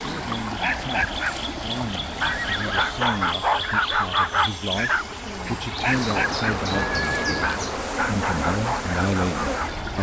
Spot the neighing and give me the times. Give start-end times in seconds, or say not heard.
2.2-2.9, 6.8-7.5.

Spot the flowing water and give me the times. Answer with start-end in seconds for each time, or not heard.
0.0-9.9.